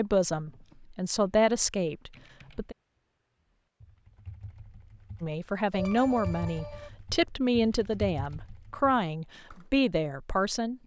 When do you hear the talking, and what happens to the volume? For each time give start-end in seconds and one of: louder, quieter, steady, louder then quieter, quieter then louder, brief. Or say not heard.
0.0-2.8 brief
5.2-10.8 steady.